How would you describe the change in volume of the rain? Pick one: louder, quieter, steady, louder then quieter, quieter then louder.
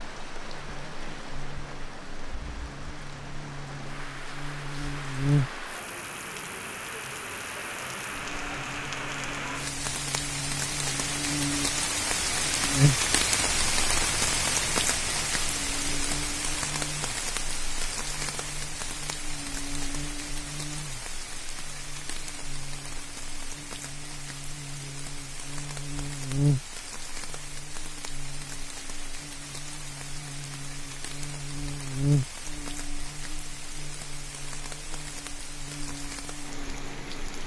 louder then quieter.